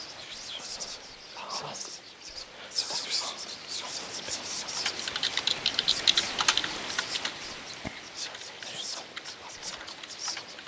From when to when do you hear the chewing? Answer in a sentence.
The chewing can't be heard in this clip.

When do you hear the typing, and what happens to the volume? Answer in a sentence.
The typing can be heard from 4.8 to 10.6 s, getting quieter.